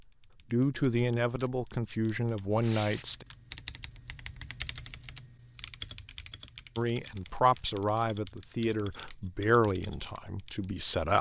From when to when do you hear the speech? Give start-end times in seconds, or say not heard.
0.5-3.2, 6.8-11.1.